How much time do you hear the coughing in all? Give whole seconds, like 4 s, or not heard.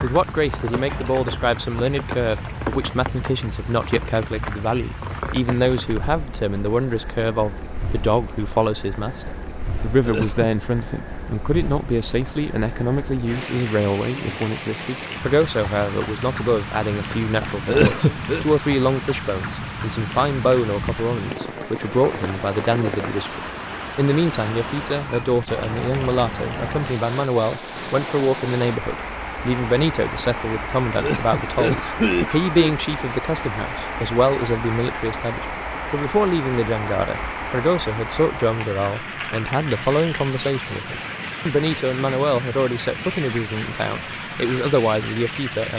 3 s.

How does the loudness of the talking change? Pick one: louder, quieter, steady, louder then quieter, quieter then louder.
steady.